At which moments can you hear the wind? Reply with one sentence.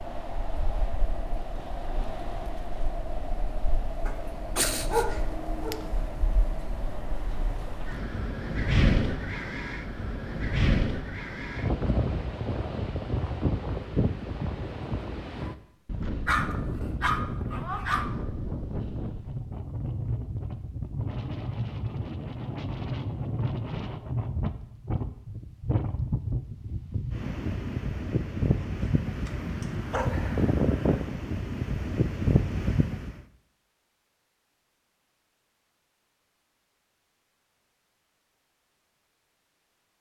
The wind can be heard from 0.0 to 33.2 s.